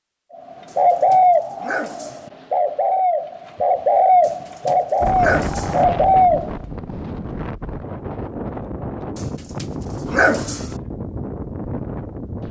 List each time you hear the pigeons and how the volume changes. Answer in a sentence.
You can hear the pigeons from 0.8 to 6.5 s, at a steady volume.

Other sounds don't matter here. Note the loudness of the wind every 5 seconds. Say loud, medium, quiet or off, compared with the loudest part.
off, loud, loud.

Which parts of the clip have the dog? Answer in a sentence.
The dog can be heard from 0.7 to 2.3 s, from 4.2 to 5.8 s and from 9.2 to 10.8 s.